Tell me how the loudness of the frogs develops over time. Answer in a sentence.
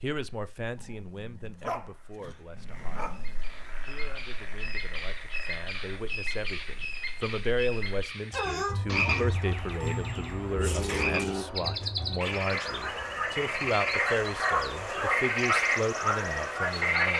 The volume of the frogs goes up.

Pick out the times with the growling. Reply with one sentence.
The growling can be heard from 0.8 to 3.4 s and from 10.5 to 11.4 s.